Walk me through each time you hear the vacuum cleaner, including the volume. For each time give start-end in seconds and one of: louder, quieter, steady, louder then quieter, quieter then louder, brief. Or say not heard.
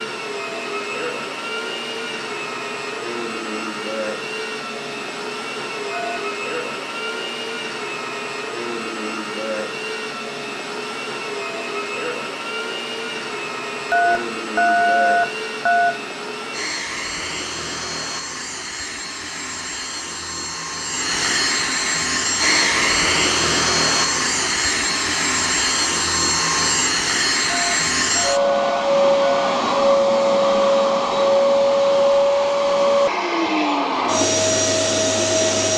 0.0-35.7 louder.